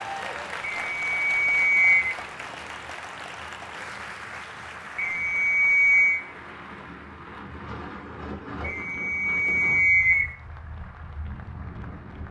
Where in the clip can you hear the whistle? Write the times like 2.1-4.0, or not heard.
0.8-2.1, 5.0-6.2, 8.6-10.3.